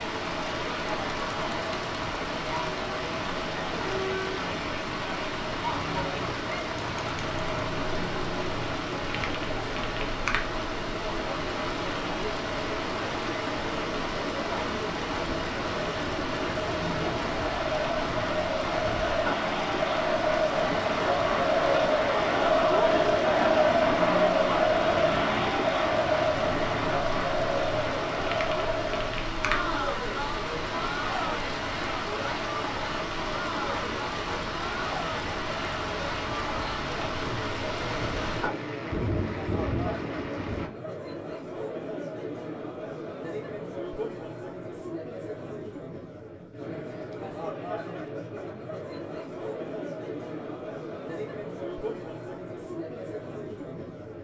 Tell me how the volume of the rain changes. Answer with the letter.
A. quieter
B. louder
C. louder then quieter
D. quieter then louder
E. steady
E.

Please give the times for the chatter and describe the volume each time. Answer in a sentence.
You can hear the chatter from 0.0 to 54.1 s, getting louder then quieter.